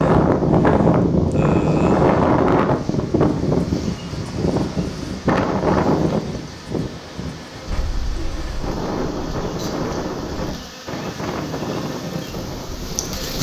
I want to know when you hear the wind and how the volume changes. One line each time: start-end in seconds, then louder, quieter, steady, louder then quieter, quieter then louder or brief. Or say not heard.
0.0-13.3 quieter.